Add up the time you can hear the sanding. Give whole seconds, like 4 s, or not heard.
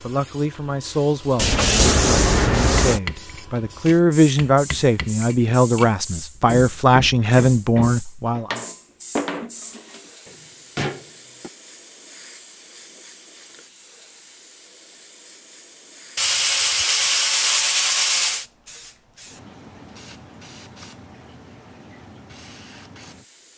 4 s.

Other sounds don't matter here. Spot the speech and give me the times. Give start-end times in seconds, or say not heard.
0.0-8.6.